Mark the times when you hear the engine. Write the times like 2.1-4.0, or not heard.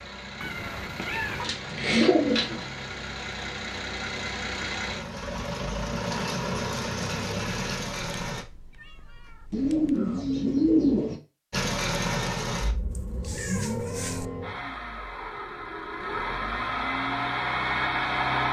0.0-8.4, 11.5-18.4.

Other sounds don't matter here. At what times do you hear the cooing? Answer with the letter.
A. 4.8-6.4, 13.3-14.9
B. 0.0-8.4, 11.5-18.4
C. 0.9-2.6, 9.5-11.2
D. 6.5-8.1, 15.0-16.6
C.